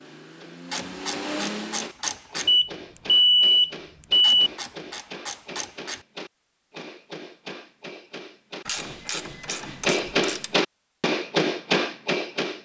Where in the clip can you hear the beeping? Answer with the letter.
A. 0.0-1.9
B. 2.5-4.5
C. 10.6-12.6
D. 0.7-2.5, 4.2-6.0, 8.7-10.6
B.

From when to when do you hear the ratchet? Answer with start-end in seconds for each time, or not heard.
0.7-2.5, 4.2-6.0, 8.7-10.6.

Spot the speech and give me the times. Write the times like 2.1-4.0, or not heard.
not heard.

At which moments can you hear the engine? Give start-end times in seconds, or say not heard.
0.0-1.9.